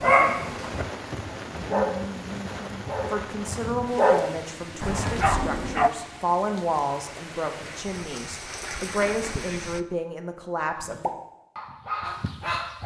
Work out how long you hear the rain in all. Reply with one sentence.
The rain can be heard for 10 seconds in total.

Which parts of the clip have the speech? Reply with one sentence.
You can hear the speech from 3.0 to 11.1 s.